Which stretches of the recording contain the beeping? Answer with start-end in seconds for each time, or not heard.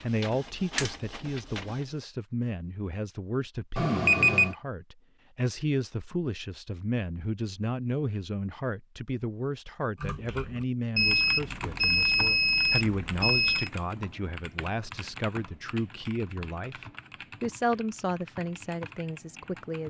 3.8-4.5, 10.9-13.7.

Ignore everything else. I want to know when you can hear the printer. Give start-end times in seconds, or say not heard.
0.0-1.9.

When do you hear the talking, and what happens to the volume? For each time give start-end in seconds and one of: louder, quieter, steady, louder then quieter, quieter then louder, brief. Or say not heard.
0.0-19.8 steady.